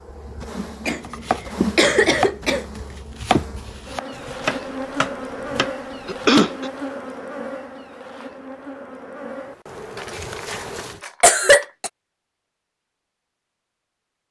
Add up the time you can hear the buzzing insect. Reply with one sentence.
The buzzing insect can be heard for 11 seconds in total.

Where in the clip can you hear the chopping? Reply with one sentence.
The chopping can be heard from 1.0 to 6.5 s.